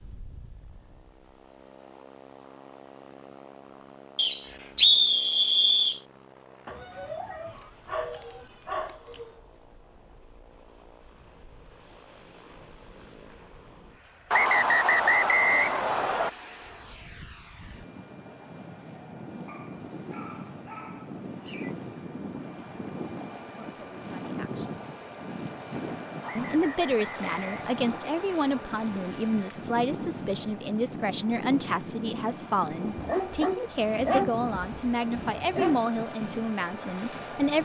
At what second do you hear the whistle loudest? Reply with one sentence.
The loudest moment of the whistle is at 5 seconds.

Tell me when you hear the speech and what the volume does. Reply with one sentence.
The speech can be heard briefly from 23.6 to 24.9 s; and from 26.4 to 37.6 s, at a steady volume.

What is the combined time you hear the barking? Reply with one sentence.
You can hear the barking for 8 seconds altogether.